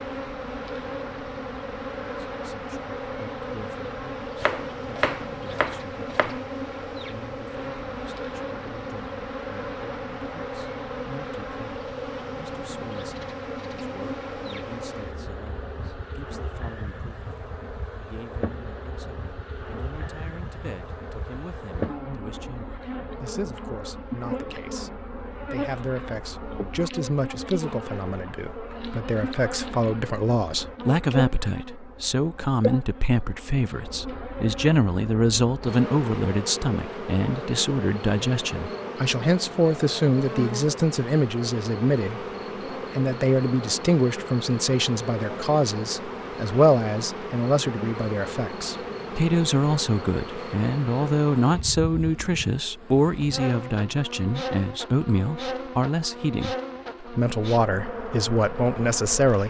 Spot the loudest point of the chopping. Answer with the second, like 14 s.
5 s.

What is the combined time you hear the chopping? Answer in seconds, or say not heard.
2 s.